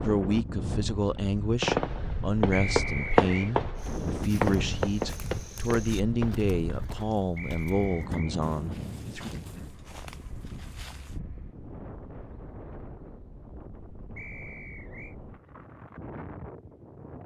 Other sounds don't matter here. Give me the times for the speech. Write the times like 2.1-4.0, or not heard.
0.0-9.3.